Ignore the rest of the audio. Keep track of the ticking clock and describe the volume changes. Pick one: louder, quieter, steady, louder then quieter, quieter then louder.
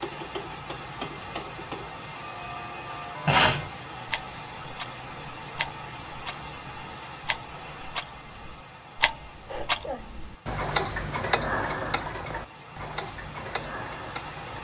louder then quieter.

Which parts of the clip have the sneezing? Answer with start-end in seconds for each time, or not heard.
3.2-3.7, 9.4-10.1.